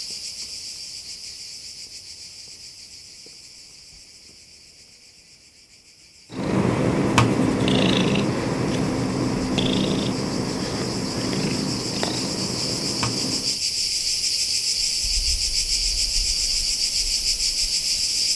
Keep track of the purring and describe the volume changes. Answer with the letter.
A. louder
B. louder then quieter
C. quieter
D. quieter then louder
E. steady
C.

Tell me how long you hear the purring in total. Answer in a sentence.
The purring can be heard for 7 seconds in total.